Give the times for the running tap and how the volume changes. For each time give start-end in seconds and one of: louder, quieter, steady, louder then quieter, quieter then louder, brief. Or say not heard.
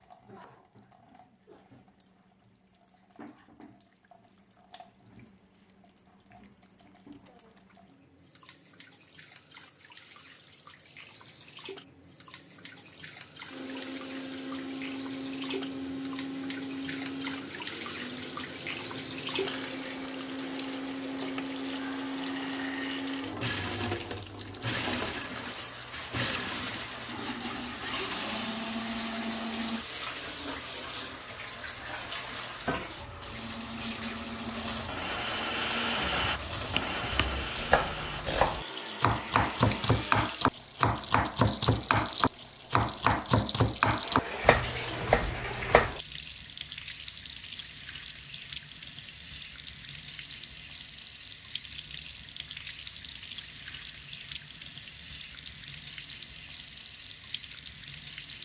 0.0-58.4 louder.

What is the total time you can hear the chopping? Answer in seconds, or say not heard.
10 s.